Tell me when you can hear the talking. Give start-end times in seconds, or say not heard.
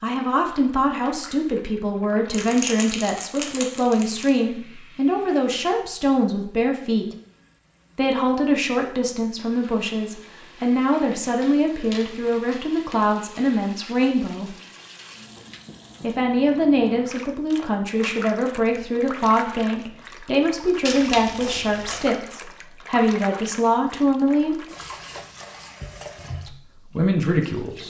0.0-7.2, 8.0-14.6, 16.0-24.6, 26.4-27.8.